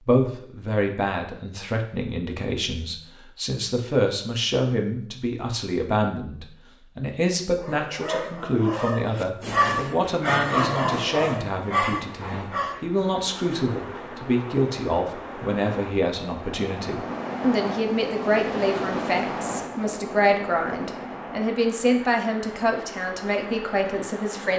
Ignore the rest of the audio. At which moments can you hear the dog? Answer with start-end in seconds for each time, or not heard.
7.5-12.8.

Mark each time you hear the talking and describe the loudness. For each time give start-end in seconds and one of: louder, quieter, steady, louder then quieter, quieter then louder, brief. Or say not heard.
0.0-24.5 steady.